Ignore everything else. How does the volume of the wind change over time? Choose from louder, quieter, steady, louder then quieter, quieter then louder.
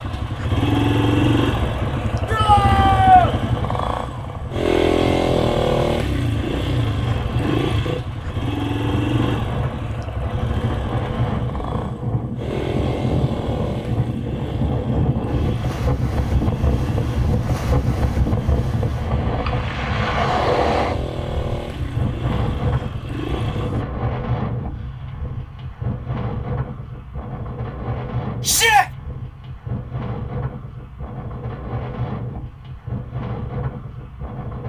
louder then quieter.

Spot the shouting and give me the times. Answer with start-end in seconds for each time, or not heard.
2.2-3.4, 28.4-28.9.